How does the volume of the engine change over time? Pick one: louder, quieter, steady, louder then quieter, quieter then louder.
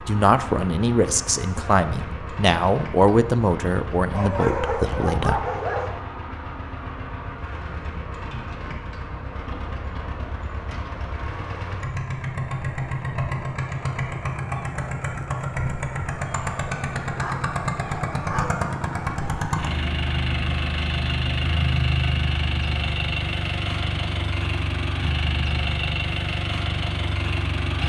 louder.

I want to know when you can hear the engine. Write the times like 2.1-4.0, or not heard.
0.0-27.8.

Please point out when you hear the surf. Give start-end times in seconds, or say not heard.
not heard.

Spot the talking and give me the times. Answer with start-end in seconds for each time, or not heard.
0.1-5.5.